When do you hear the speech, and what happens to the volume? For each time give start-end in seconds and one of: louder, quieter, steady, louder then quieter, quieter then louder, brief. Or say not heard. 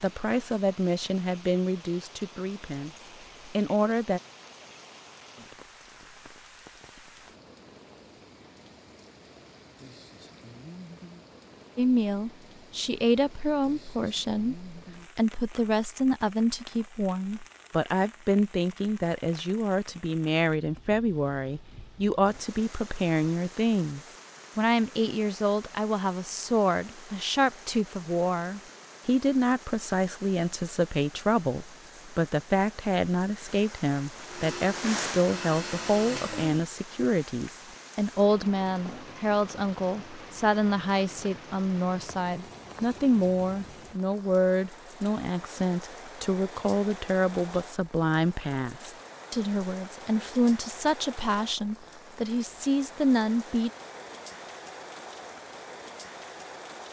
0.0-4.2 quieter then louder
11.8-53.7 steady.